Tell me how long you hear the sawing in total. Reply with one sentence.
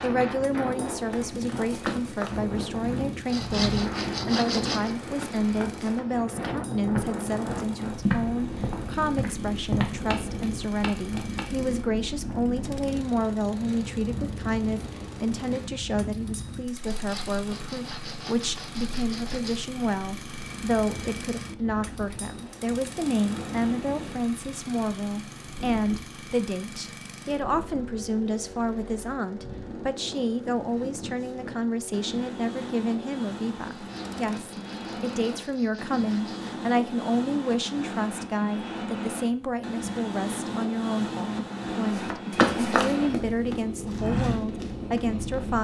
You can hear the sawing for 7 seconds altogether.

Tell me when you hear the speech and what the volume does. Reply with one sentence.
You can hear the speech from 0.0 to 45.5 s, at a steady volume.